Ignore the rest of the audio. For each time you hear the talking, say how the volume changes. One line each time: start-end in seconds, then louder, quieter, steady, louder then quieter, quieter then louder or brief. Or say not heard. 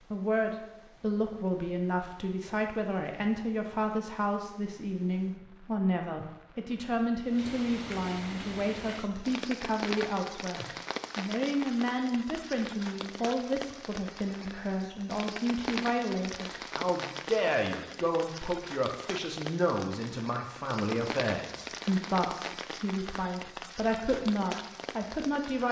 0.1-25.6 steady.